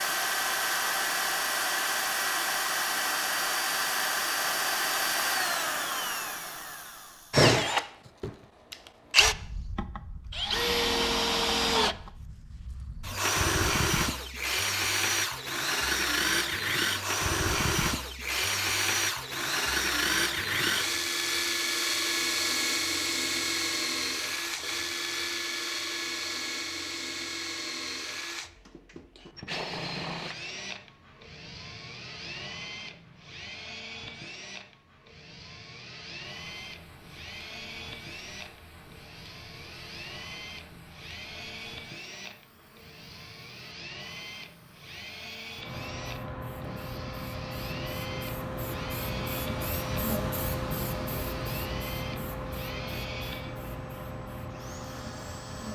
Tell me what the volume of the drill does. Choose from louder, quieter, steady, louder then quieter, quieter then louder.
quieter.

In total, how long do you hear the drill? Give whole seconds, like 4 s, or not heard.
56 s.